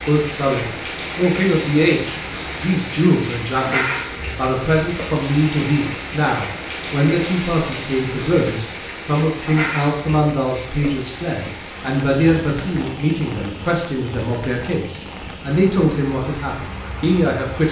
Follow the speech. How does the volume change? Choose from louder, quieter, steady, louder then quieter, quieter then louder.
steady.